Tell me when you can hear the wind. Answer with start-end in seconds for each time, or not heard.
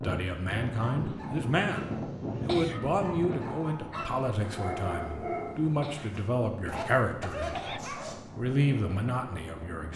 0.0-9.9.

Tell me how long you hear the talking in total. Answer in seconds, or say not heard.
9 s.